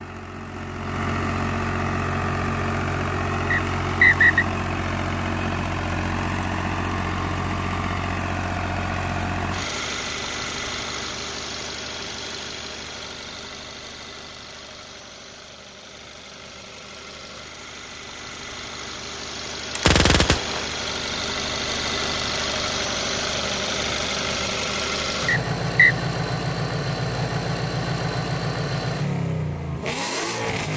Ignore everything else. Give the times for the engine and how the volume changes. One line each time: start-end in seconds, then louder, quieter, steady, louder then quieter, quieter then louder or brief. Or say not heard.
0.0-30.7 quieter then louder.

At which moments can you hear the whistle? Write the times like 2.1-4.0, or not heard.
3.5-4.5, 25.2-25.9.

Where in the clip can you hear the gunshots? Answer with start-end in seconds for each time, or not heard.
19.8-20.7.